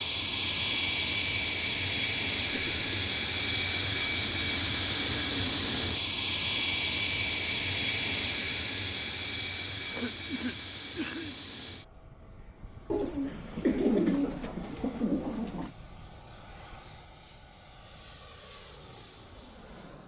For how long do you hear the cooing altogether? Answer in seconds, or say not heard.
3 s.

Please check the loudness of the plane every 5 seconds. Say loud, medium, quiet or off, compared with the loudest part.
loud, loud, quiet, quiet.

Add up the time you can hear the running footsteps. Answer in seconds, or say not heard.
not heard.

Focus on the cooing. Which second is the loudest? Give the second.
14 s.